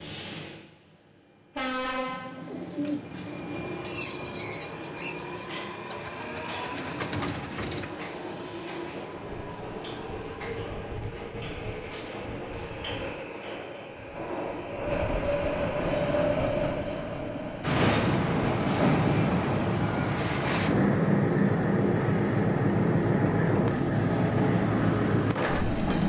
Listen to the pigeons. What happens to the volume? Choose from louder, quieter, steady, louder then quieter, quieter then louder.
quieter then louder.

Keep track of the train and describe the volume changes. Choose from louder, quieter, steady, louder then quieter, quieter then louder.
louder.